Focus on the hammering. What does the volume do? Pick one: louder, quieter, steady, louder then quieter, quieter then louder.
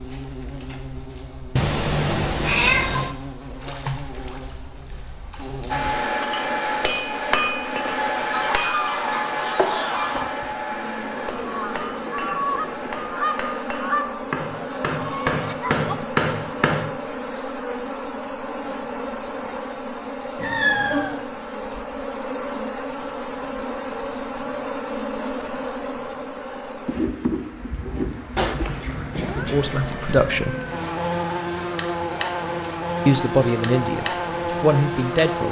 quieter then louder.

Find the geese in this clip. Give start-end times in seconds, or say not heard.
8.3-15.9.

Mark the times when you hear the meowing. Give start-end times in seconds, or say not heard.
1.6-3.1, 20.4-21.2, 28.4-30.9.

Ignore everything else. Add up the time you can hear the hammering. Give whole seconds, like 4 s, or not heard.
11 s.